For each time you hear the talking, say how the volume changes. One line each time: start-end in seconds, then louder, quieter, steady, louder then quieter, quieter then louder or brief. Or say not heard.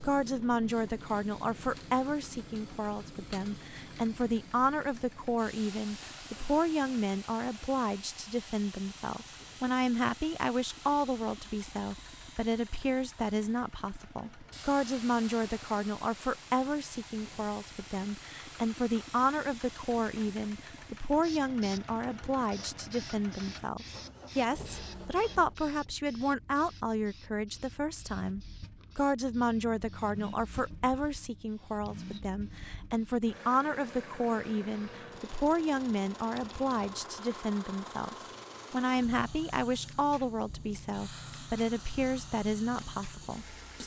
0.0-43.8 steady.